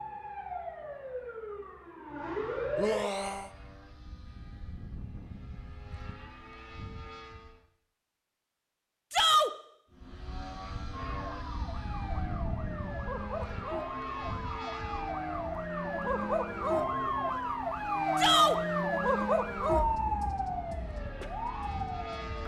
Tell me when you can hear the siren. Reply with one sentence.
The siren can be heard from 0.0 to 3.0 s and from 10.9 to 22.4 s.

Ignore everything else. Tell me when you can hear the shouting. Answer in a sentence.
You can hear the shouting from 2.8 to 3.5 s, from 9.1 to 9.5 s and from 18.1 to 18.6 s.